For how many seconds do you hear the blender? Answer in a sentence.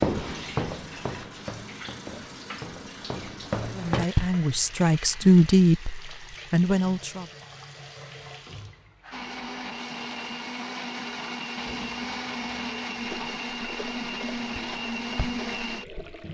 The blender can be heard for 7 seconds in total.